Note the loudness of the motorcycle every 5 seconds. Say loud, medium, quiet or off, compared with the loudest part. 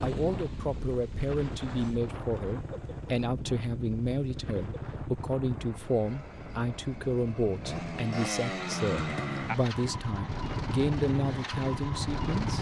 medium, loud, loud.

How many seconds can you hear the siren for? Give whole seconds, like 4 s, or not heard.
not heard.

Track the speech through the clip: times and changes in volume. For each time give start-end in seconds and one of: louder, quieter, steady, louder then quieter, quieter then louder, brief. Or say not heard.
0.0-12.5 steady.